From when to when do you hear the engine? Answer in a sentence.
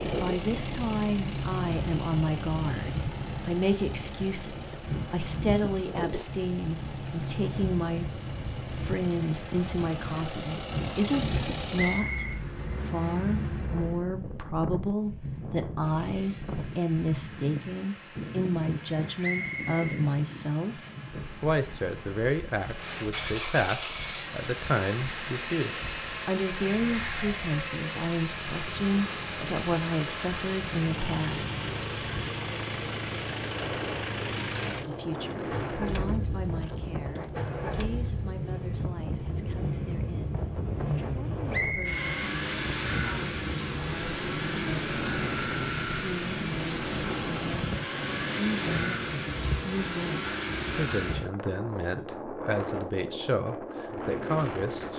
The engine can be heard from 0.0 to 14.1 s and from 15.8 to 51.3 s.